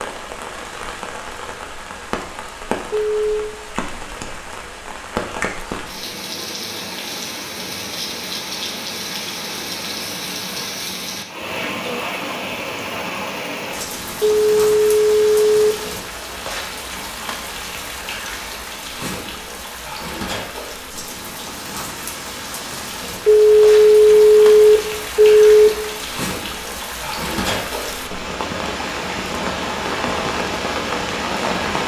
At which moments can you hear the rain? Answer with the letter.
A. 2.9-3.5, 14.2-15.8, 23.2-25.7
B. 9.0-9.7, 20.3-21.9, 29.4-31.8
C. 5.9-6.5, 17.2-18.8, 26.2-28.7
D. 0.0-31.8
D.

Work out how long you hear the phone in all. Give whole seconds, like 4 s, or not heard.
5 s.